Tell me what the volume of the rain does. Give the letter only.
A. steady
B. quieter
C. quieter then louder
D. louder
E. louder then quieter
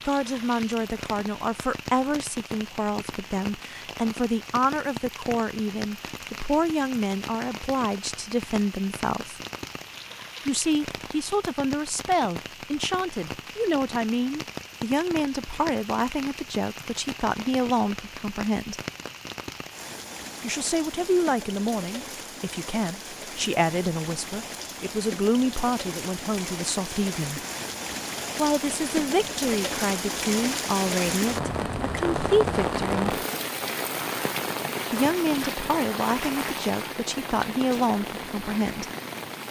D.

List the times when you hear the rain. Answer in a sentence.
The rain can be heard from 0.0 to 39.4 s.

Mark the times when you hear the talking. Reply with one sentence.
The talking can be heard from 0.1 to 9.4 s, from 10.4 to 18.8 s, from 20.4 to 27.4 s, from 28.4 to 33.1 s and from 34.9 to 38.9 s.